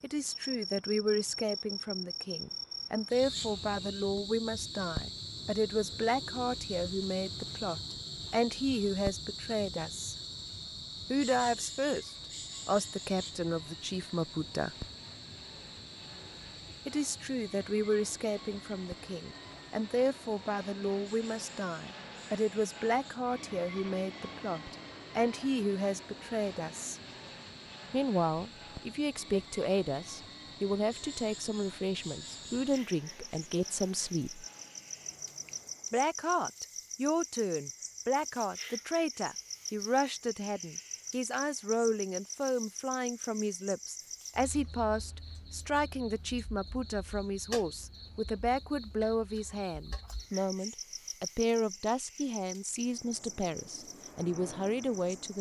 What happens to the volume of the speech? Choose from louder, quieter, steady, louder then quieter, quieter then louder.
steady.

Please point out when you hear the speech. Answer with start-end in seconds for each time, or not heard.
0.0-10.2, 11.1-14.7, 16.9-26.9, 27.9-34.5, 35.9-55.3.